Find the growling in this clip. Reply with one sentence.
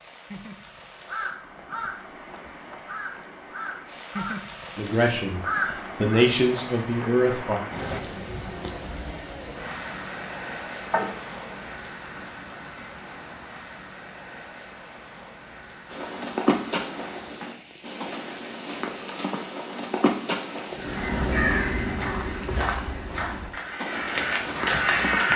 The growling can be heard from 10.9 to 11.6 s.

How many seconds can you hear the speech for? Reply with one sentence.
The speech can be heard for 3 seconds in total.